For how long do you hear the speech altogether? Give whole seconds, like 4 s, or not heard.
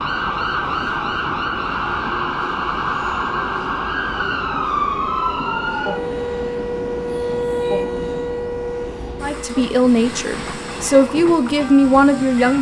3 s.